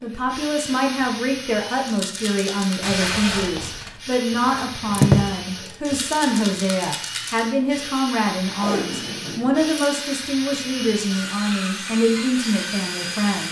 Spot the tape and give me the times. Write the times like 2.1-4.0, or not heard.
2.8-4.0, 8.5-9.6.